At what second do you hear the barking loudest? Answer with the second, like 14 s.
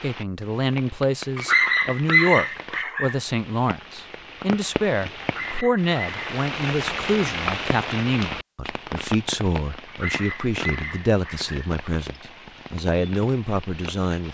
2 s.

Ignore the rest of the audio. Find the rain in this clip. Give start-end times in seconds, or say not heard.
0.0-14.3.